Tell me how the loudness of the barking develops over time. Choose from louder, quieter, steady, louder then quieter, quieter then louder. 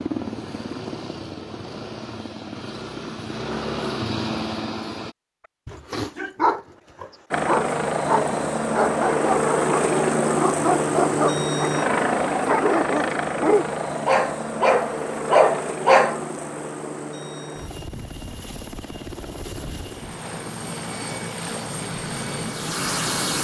louder.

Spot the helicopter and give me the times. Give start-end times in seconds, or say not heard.
0.0-5.2, 7.3-23.4.